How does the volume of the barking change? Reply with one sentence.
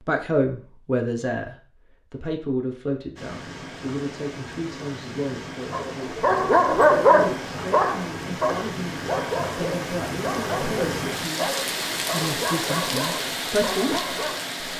The loudness of the barking goes down.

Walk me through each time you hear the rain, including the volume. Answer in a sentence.
You can hear the rain from 3.1 to 14.7 s, getting louder.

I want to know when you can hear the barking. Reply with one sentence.
The barking can be heard from 5.7 to 14.4 s.